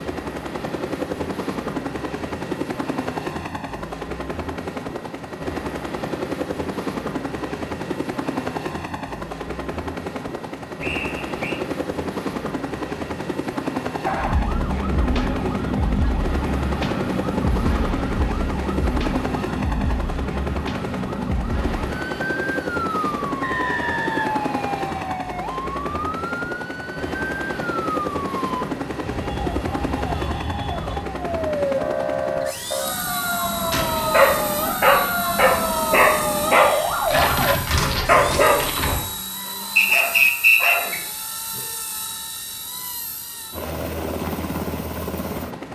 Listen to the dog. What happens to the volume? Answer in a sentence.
The volume of the dog goes down.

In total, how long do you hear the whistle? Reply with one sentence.
The whistle can be heard for 4 seconds in total.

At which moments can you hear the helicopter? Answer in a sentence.
The helicopter can be heard from 0.0 to 45.7 s.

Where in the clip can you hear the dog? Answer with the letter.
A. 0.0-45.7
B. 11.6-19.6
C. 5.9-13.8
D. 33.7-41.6
D.